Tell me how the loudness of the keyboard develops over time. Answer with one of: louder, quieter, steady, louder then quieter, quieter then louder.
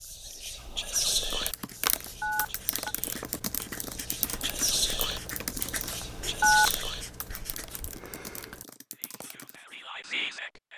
quieter.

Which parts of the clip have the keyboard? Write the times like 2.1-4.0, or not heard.
1.2-9.6.